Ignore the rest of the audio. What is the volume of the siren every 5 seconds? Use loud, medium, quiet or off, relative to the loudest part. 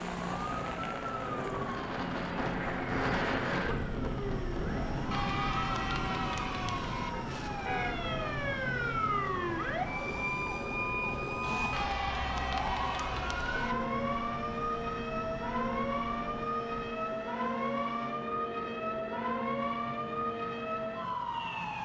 medium, loud, loud, loud, loud.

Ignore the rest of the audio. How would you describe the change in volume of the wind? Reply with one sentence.
The loudness of the wind goes down.